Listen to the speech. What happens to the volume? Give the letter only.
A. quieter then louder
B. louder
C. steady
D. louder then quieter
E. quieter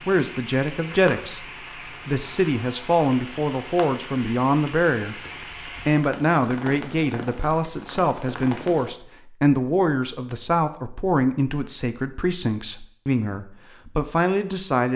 C.